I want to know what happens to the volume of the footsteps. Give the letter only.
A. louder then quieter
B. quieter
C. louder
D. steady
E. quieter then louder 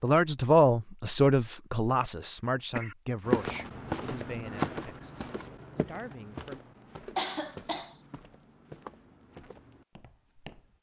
B.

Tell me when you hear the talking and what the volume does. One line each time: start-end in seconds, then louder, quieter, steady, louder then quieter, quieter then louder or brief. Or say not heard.
0.0-6.6 quieter.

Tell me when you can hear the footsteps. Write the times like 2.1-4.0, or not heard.
3.2-10.7.